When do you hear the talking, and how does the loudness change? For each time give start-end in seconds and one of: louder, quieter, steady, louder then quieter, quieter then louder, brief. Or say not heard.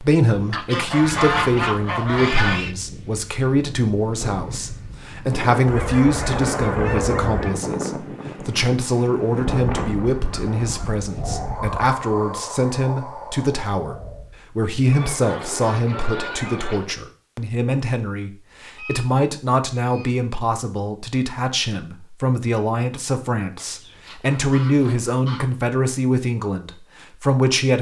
0.0-27.7 steady.